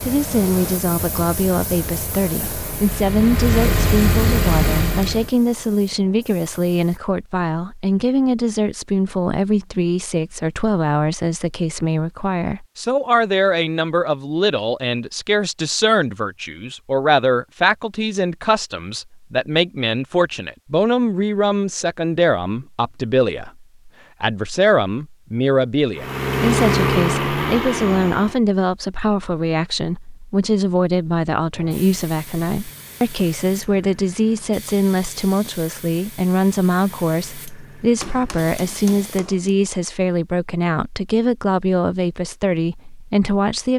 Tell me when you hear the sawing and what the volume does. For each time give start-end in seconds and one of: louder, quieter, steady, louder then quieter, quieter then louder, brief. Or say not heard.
not heard.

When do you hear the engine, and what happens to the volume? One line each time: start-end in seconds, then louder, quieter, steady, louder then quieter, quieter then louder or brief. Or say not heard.
0.0-5.3 louder
25.9-28.4 brief.